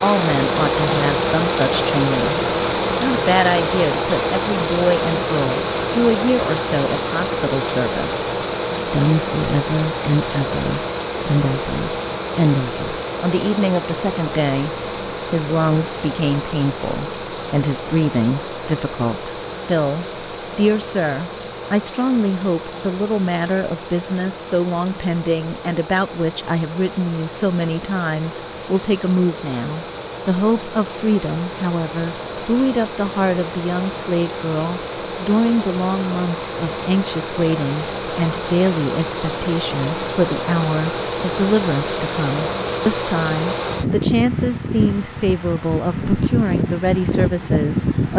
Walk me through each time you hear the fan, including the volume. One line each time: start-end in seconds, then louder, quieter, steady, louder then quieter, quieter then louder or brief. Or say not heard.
0.0-48.1 quieter then louder.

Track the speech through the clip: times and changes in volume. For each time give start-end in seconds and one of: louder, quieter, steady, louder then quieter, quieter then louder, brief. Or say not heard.
0.0-2.4 brief
3.0-48.1 steady.